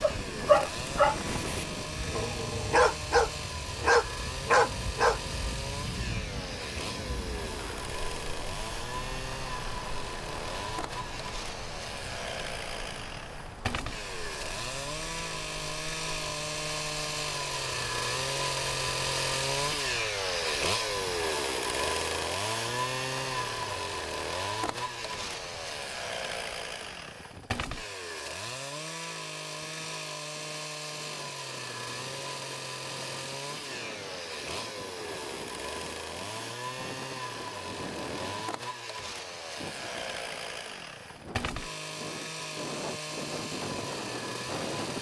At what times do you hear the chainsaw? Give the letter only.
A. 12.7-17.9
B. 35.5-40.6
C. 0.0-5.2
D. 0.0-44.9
D.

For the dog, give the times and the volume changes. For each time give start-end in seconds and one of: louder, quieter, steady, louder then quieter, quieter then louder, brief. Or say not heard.
0.0-5.2 quieter then louder.